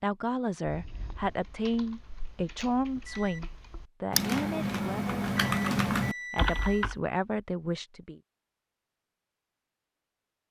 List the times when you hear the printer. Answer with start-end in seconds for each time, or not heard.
not heard.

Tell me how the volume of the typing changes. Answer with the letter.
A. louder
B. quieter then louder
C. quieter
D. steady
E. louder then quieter
A.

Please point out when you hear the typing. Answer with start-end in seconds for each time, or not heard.
0.7-7.0.